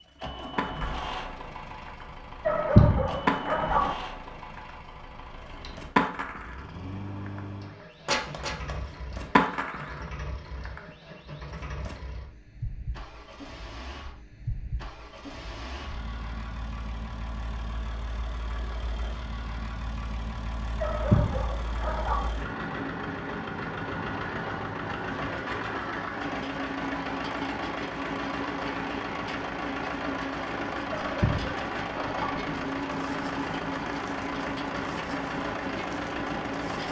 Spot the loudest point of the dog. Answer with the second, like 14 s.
3 s.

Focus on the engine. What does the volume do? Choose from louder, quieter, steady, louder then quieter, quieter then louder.
louder.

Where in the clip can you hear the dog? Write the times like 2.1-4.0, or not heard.
2.5-4.0, 20.8-22.3, 30.9-32.4.